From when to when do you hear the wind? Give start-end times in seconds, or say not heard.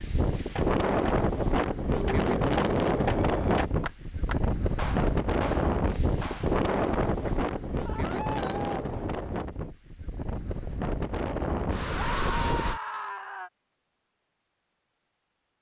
0.0-12.8.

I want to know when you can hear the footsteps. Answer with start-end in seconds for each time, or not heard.
not heard.